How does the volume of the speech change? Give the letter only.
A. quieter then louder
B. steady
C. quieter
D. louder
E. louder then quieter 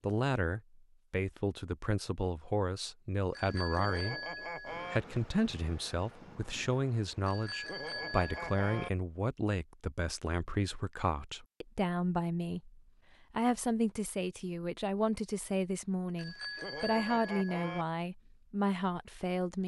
B.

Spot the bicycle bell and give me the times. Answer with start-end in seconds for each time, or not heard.
3.3-5.0, 7.2-8.9, 16.1-17.9.